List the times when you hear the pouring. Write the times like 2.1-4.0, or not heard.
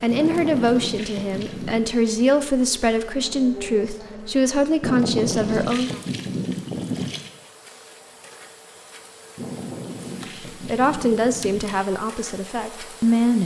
0.1-1.9, 4.8-7.3, 9.3-11.8.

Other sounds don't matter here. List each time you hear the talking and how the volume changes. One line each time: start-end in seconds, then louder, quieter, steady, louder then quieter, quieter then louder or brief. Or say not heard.
0.0-5.9 steady
10.6-13.4 brief.